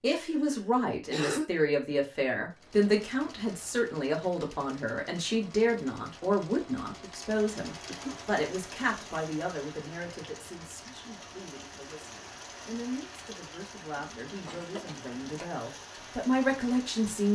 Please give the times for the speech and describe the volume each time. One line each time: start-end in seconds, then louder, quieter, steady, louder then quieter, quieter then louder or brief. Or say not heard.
0.0-17.3 quieter then louder.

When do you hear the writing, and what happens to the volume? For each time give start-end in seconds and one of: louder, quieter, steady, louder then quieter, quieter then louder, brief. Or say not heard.
not heard.